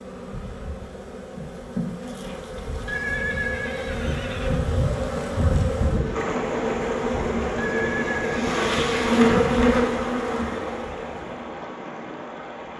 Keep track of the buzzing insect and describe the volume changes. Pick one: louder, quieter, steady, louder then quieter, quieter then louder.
louder.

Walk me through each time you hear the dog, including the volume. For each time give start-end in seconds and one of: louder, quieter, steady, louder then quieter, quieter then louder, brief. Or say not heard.
not heard.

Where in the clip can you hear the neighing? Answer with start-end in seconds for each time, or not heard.
2.9-4.7, 7.5-9.6.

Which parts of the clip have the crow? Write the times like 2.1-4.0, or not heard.
not heard.